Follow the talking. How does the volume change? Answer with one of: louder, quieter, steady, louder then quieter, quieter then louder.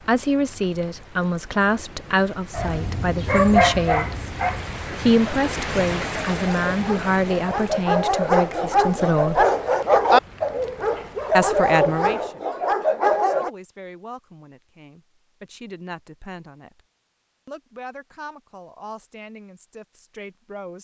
quieter.